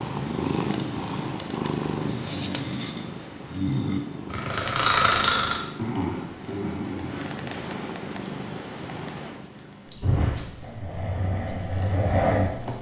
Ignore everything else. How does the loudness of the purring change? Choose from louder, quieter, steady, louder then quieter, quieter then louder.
quieter.